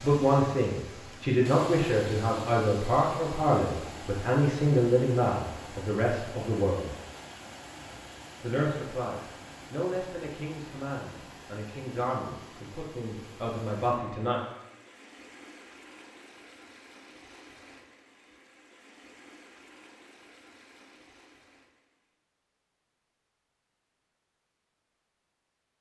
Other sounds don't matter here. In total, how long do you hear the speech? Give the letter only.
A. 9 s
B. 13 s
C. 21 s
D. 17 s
B.